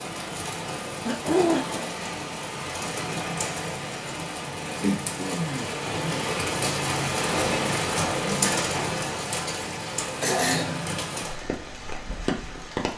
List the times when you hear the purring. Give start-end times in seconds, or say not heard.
not heard.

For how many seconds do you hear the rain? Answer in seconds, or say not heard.
13 s.